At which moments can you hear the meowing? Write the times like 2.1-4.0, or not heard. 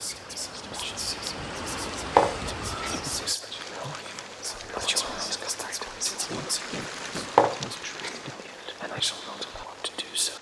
2.1-3.1, 7.3-8.3.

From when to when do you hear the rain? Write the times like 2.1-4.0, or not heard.
0.0-10.3.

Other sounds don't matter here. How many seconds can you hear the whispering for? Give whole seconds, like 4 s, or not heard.
10 s.